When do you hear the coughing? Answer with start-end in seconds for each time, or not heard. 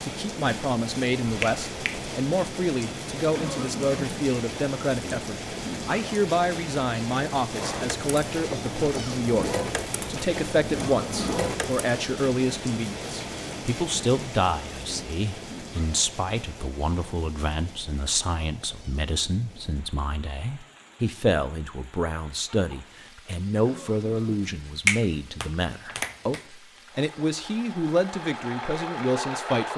3.4-4.2, 10.7-11.4, 23.6-24.5.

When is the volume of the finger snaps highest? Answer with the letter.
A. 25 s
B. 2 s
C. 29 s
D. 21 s
A.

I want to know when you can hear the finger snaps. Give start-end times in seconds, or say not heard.
1.2-2.1, 24.9-26.4.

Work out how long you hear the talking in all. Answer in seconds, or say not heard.
30 s.